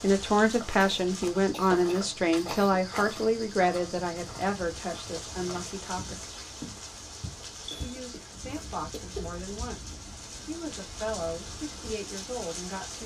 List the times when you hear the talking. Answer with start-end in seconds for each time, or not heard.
0.0-6.2, 7.8-13.0.